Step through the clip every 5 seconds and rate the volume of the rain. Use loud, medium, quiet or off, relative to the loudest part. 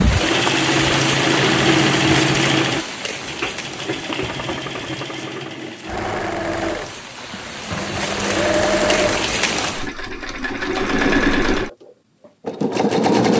loud, loud, off.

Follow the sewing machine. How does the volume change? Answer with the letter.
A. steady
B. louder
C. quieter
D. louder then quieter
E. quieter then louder
E.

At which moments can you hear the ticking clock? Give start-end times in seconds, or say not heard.
not heard.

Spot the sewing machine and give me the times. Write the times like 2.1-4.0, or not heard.
0.1-13.3.